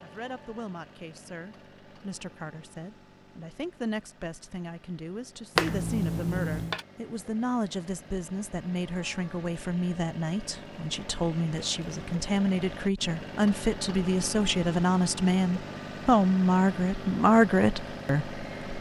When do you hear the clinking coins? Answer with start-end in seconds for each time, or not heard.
5.5-6.8.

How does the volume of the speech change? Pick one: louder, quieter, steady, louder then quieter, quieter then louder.
louder.